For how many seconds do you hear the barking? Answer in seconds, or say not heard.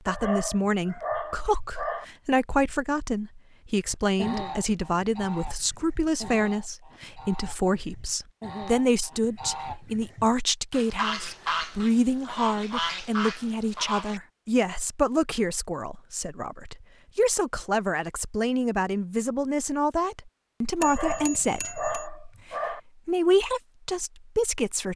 4 s.